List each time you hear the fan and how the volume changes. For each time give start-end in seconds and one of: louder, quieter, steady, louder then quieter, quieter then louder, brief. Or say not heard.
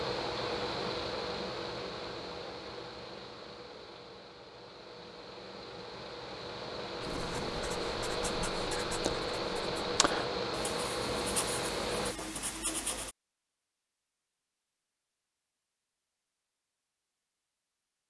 0.0-12.2 quieter then louder.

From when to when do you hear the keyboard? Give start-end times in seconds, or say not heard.
not heard.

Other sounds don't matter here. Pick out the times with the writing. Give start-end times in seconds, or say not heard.
7.0-13.2.